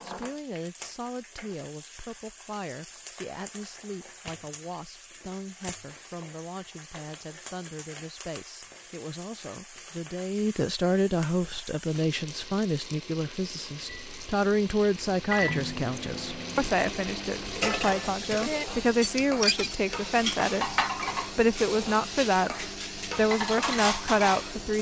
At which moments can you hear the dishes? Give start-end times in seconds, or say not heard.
17.4-24.6.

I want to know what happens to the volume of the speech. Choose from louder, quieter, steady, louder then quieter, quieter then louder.
louder.